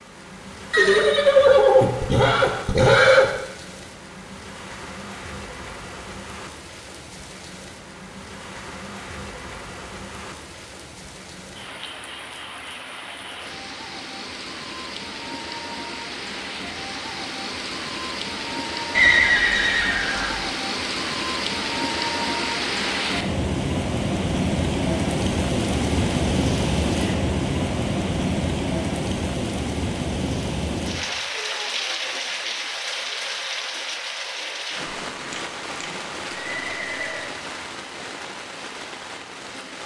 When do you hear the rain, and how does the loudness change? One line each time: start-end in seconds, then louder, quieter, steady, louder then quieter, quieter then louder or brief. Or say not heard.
0.0-39.8 louder then quieter.